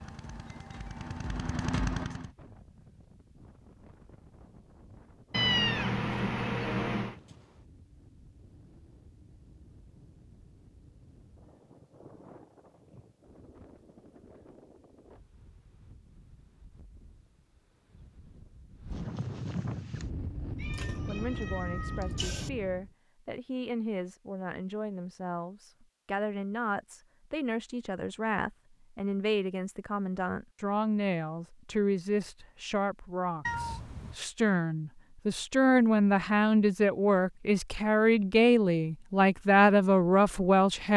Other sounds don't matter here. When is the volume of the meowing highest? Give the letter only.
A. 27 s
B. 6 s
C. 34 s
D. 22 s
B.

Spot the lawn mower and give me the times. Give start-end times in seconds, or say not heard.
0.0-2.3.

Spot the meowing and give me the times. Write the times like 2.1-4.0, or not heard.
5.3-7.2, 20.6-22.5, 33.5-34.1.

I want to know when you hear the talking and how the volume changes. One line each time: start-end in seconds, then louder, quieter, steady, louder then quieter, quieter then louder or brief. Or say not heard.
21.1-40.9 louder.